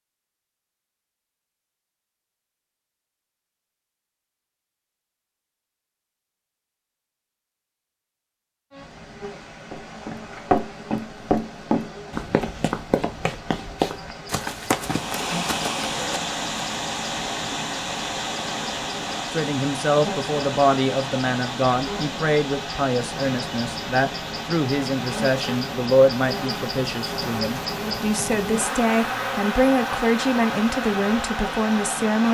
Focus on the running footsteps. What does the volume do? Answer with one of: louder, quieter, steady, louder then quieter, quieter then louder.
quieter.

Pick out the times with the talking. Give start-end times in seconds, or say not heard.
19.3-32.3.